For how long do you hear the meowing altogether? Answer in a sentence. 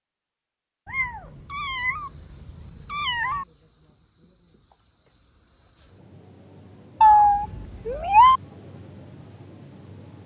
The meowing can be heard for 4 seconds in total.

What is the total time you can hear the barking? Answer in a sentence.
You can't hear the barking here.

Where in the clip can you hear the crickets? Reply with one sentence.
You can hear the crickets from 1.9 to 10.2 s.